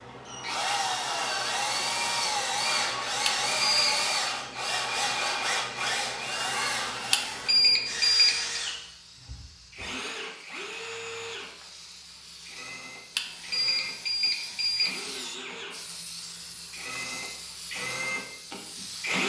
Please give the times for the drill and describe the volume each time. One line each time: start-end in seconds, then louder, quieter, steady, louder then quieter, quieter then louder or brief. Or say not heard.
0.0-19.2 quieter then louder.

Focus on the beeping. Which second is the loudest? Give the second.
8 s.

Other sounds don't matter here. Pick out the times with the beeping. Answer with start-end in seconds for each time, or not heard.
3.2-4.0, 7.1-8.6, 13.2-15.0.